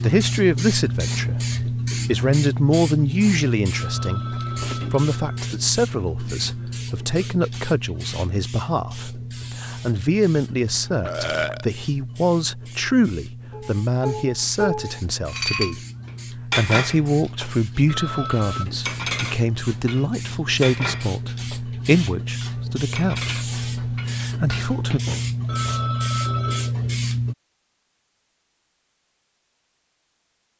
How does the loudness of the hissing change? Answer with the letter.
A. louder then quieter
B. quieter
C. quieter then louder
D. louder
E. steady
C.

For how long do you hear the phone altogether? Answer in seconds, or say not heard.
4 s.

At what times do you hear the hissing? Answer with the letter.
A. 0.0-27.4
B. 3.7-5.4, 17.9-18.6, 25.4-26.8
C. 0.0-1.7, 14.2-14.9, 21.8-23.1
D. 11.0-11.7
A.